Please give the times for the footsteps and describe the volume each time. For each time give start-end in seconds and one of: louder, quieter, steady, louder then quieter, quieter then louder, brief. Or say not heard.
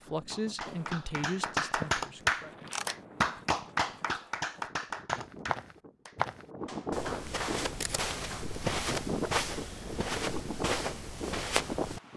0.7-12.0 louder.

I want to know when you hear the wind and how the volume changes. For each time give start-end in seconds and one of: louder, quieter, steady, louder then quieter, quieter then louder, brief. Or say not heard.
0.0-12.1 louder.